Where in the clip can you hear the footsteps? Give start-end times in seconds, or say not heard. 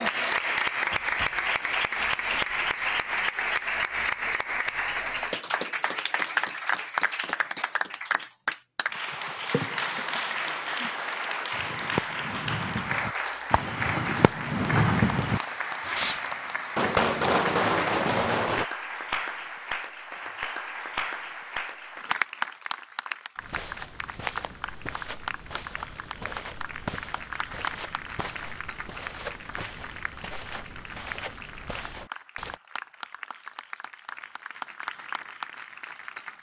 23.4-32.6.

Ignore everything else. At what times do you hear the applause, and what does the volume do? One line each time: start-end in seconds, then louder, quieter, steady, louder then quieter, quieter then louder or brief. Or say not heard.
0.0-36.3 quieter.